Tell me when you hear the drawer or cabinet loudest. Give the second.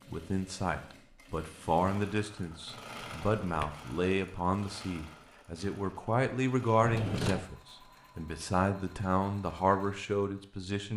7 s.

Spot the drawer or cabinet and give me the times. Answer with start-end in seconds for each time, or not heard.
2.7-3.8, 6.8-7.5.